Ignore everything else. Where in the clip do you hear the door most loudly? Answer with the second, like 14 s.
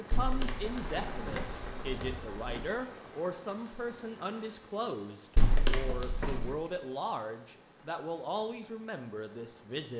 6 s.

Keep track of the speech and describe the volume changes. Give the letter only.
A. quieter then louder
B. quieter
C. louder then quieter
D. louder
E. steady
E.